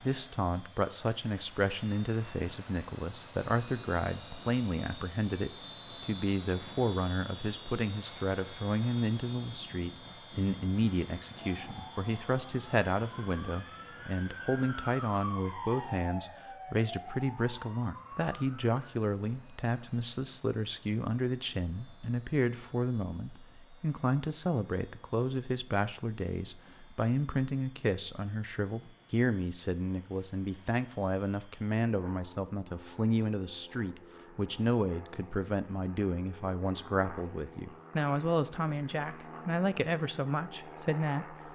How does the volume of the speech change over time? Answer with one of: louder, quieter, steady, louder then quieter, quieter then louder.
steady.